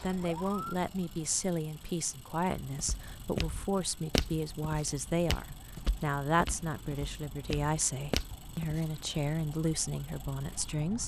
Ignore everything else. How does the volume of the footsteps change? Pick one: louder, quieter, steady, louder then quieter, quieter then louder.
quieter then louder.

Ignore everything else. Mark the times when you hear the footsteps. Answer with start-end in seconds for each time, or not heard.
2.6-8.9.